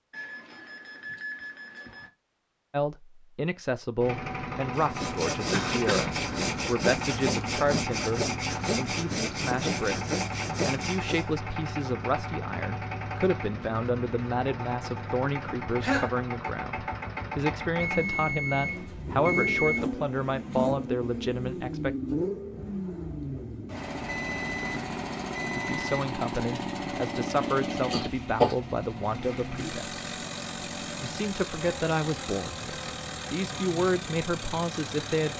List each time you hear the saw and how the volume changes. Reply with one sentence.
The saw can be heard from 4.8 to 11.2 s, at a steady volume.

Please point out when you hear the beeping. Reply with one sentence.
You can hear the beeping from 0.1 to 2.1 s, from 17.8 to 19.8 s and from 23.6 to 26.1 s.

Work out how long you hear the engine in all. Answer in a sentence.
You can hear the engine for 31 seconds altogether.